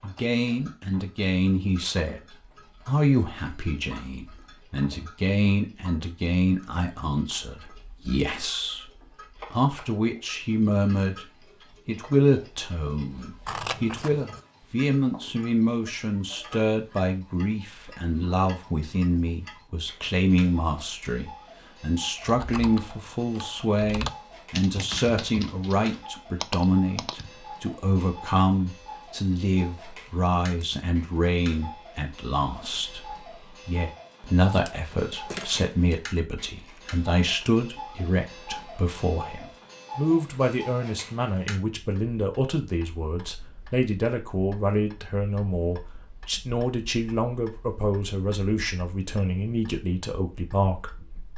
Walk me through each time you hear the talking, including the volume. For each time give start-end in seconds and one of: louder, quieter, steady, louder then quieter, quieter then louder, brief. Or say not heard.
0.0-51.3 steady.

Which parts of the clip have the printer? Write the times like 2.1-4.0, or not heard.
not heard.